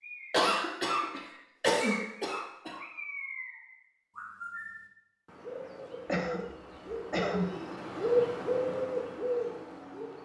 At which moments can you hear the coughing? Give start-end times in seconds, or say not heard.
0.3-2.9, 6.0-7.5.